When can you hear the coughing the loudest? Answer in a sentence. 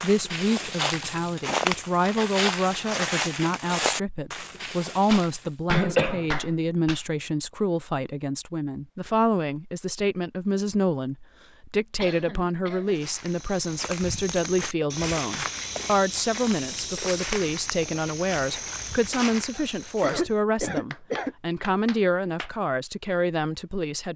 The volume of the coughing peaks at 6 seconds.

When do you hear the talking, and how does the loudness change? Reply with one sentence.
You can hear the talking from 0.0 to 24.1 s, at a steady volume.